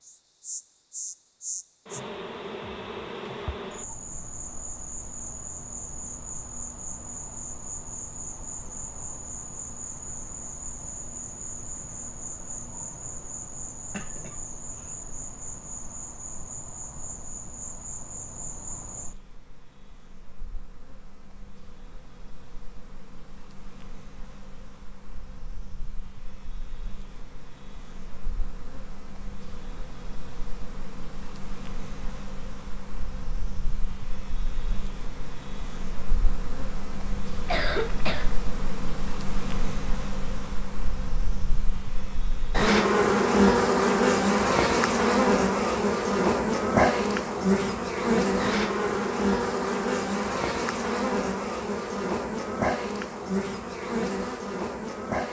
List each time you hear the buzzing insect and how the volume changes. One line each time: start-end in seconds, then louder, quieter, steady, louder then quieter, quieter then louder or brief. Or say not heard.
0.0-55.2 quieter then louder.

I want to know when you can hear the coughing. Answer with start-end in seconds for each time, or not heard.
13.9-14.3, 37.5-38.4.